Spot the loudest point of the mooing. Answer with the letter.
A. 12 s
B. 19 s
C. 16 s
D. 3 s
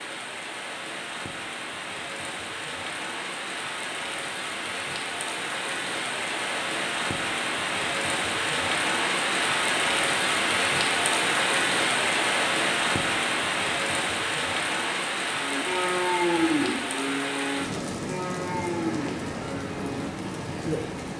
C.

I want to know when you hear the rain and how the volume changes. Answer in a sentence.
The rain can be heard from 0.0 to 21.1 s, getting louder then quieter.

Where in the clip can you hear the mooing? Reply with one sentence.
The mooing can be heard from 15.3 to 21.1 s.